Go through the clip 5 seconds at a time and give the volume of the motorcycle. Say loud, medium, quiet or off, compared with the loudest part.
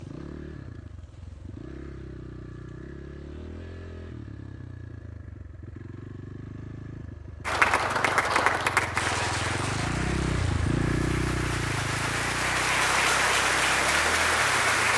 medium, medium, loud.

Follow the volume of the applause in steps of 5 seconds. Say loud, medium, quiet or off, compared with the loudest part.
off, loud, loud.